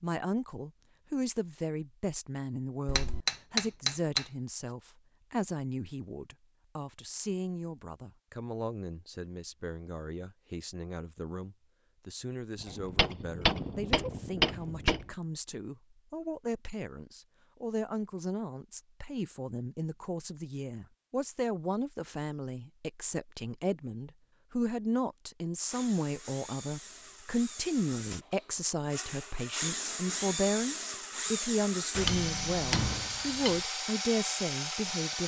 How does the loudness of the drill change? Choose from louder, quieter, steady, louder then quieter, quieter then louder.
louder.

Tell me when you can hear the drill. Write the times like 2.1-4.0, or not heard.
25.6-35.2.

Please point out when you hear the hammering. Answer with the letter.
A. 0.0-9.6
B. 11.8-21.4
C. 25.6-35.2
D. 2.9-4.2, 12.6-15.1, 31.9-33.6
D.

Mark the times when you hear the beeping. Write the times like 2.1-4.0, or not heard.
not heard.